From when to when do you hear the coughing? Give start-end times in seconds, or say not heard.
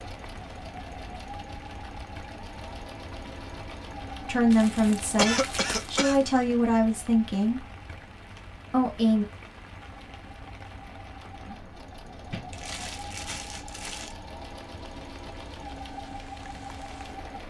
5.0-6.2.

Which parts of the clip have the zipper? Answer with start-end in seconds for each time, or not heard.
not heard.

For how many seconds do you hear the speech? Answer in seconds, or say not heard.
4 s.